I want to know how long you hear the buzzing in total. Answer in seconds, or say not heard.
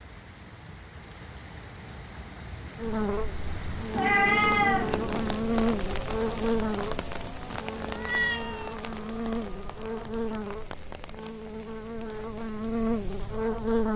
11 s.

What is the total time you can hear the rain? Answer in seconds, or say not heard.
14 s.